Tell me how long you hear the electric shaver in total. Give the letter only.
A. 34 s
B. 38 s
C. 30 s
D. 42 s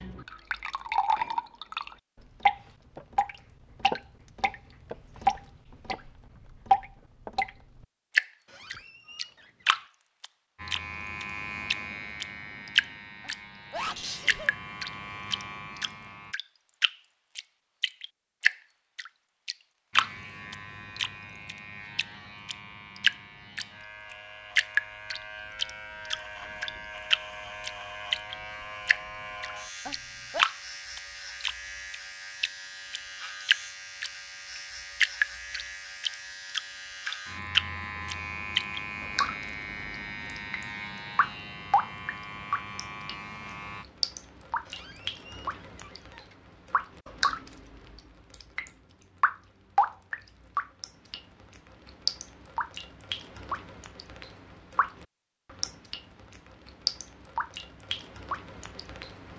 C.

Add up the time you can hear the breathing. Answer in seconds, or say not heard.
not heard.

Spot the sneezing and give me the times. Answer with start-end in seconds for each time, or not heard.
13.2-14.6, 29.9-30.4.